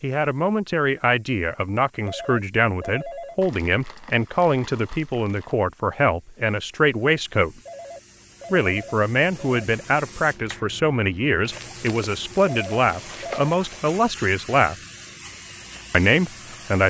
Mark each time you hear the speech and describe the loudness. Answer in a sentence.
The speech can be heard from 0.0 to 7.5 s, at a steady volume; from 8.5 to 14.8 s, at a steady volume; and briefly from 15.9 to 16.8 s.